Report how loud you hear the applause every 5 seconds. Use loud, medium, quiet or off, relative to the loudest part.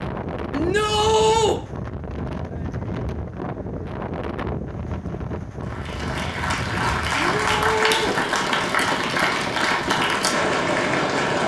off, loud, loud.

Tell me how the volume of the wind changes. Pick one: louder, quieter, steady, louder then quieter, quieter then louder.
steady.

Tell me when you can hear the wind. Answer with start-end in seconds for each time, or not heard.
0.0-11.4.